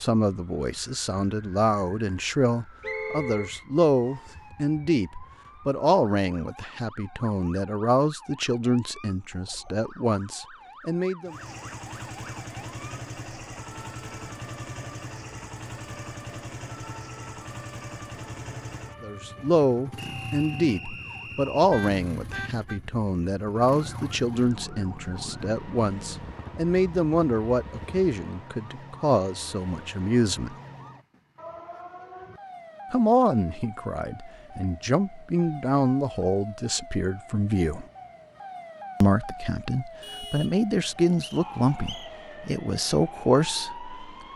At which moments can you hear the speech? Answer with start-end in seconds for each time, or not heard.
0.0-11.3, 19.0-30.6, 32.9-37.9, 39.0-43.9.